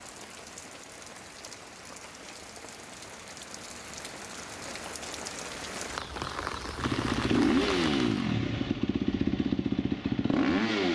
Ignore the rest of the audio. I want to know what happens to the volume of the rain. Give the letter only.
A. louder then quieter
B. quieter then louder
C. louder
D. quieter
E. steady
C.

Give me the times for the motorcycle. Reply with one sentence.
You can hear the motorcycle from 6.8 to 10.9 s.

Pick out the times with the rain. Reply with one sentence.
The rain can be heard from 0.0 to 8.3 s.